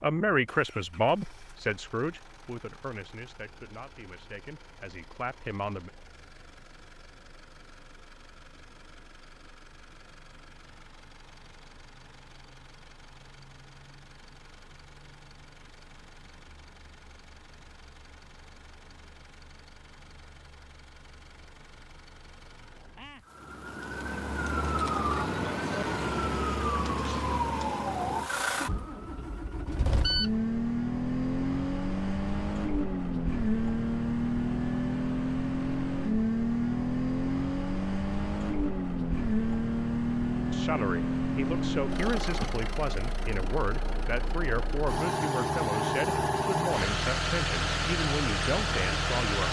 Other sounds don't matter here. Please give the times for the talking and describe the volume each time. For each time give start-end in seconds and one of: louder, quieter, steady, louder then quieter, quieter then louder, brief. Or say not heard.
0.0-5.9 quieter then louder
40.5-49.4 steady.